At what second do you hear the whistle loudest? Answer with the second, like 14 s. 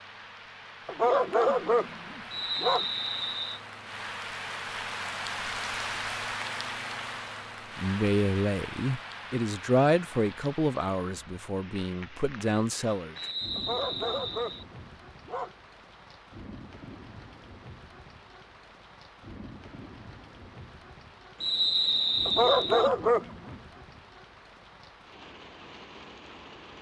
22 s.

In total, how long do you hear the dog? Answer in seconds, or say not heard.
5 s.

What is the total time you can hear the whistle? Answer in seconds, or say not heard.
4 s.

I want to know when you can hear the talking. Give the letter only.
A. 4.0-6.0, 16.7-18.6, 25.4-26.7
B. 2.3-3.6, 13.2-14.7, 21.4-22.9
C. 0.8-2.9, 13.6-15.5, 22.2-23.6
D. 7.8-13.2
D.